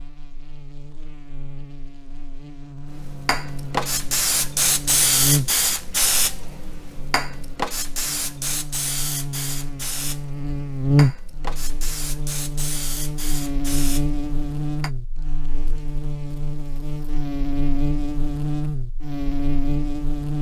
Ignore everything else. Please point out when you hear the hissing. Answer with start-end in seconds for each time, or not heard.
2.9-14.9.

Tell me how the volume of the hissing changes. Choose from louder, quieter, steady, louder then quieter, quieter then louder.
quieter.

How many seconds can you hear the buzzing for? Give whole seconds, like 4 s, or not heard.
20 s.